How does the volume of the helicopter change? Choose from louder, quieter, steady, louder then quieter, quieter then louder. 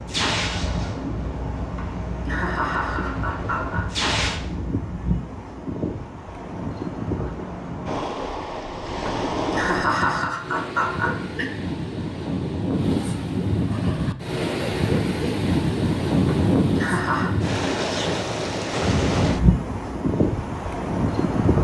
quieter then louder.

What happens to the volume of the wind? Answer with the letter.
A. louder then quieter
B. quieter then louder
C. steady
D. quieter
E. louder
E.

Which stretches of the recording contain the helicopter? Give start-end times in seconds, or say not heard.
0.1-4.4.